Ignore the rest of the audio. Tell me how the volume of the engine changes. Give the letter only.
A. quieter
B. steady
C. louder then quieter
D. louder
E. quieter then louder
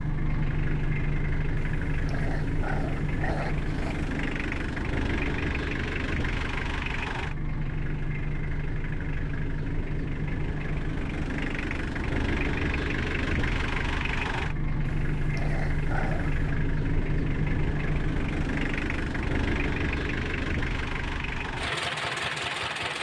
B.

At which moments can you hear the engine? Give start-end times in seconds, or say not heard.
0.0-22.9.